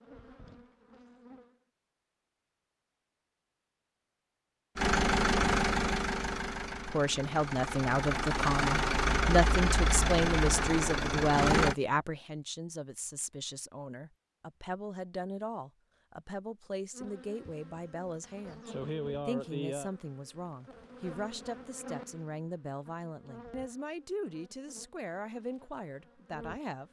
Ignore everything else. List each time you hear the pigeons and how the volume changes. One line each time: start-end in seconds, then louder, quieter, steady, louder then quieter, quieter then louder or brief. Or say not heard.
not heard.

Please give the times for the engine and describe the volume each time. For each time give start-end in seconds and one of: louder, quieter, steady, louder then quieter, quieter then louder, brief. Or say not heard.
4.8-11.8 quieter then louder.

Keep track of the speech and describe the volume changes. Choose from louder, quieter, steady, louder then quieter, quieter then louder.
quieter.